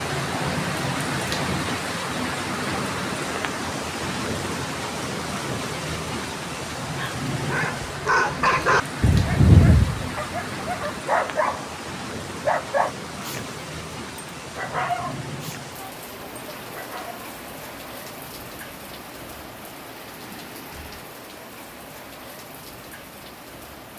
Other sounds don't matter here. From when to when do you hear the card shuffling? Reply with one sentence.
The card shuffling can't be heard in this clip.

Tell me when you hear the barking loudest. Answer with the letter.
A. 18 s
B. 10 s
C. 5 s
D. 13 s
B.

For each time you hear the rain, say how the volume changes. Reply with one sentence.
You can hear the rain from 0.0 to 23.9 s, getting quieter.